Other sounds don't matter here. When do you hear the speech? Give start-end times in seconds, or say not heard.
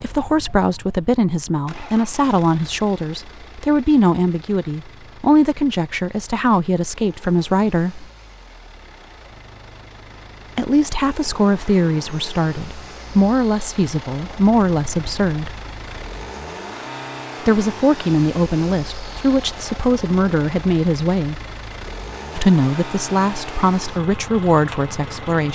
0.0-8.1, 10.6-15.5, 17.4-21.4, 22.4-25.4.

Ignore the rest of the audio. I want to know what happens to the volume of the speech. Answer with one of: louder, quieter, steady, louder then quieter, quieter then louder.
steady.